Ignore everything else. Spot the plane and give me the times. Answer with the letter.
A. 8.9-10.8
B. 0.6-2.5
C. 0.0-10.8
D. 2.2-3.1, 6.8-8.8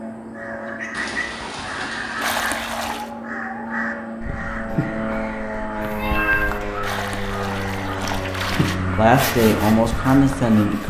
C.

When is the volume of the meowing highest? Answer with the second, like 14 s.
6 s.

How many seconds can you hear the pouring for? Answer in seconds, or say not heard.
3 s.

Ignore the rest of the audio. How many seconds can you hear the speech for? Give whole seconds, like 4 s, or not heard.
2 s.